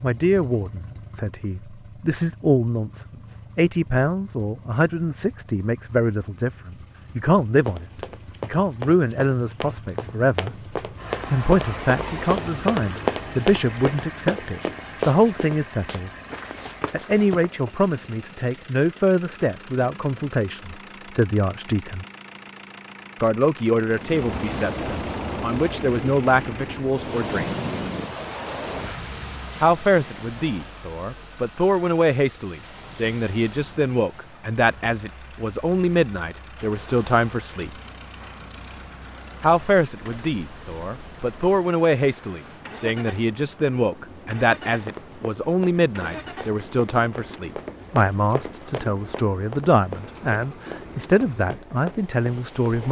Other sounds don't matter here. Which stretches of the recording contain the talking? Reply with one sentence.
You can hear the talking from 0.0 to 16.1 s, from 16.9 to 22.1 s, from 23.2 to 27.5 s, from 29.6 to 37.7 s and from 39.4 to 52.8 s.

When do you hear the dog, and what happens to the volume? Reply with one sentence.
You can't hear the dog here.